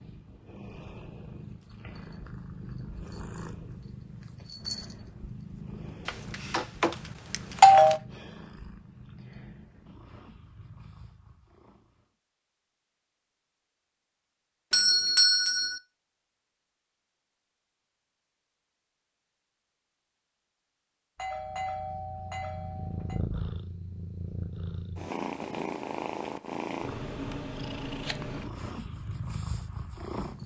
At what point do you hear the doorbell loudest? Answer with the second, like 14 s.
8 s.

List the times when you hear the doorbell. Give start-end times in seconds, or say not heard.
6.0-8.0, 14.7-15.8, 21.1-23.2.